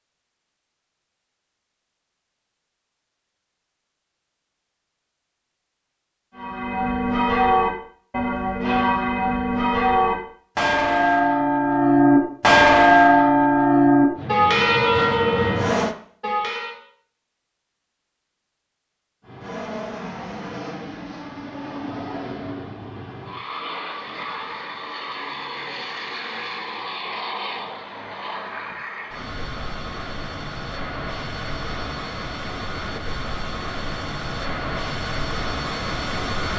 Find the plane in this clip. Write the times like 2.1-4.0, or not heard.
14.1-15.9, 19.2-36.5.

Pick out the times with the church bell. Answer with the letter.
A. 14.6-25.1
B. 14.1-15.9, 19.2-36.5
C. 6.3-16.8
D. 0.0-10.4
C.